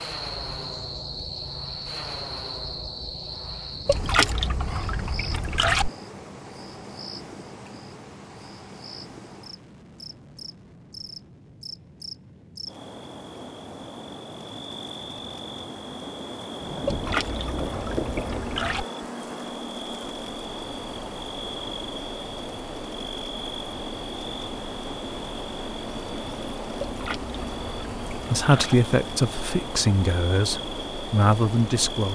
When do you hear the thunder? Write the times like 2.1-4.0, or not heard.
16.6-18.6.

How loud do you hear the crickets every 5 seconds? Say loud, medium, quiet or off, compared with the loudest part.
loud, medium, medium, loud, loud, loud, loud.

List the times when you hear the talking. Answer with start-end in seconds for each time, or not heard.
28.3-32.0.